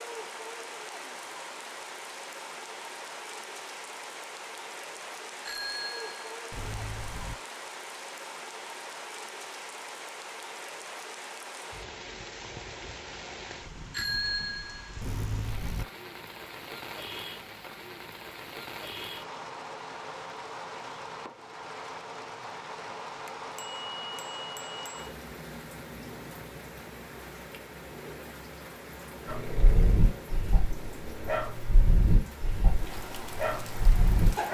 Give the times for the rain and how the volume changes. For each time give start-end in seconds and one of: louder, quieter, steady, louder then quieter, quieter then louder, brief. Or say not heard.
0.0-34.5 steady.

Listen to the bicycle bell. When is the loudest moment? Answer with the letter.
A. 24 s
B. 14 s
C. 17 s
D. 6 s
B.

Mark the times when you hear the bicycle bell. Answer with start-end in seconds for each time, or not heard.
5.5-7.3, 13.9-15.8, 23.2-25.1.